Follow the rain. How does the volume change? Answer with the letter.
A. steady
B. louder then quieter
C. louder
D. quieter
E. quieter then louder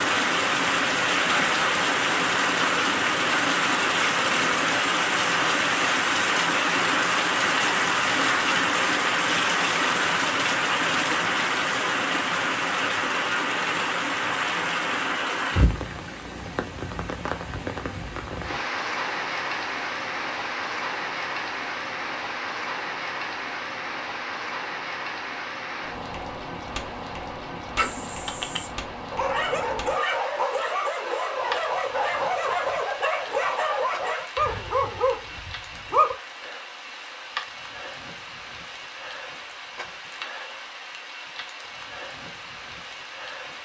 D.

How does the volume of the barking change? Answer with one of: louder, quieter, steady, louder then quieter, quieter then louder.
steady.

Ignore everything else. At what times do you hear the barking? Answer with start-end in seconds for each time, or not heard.
27.8-36.1.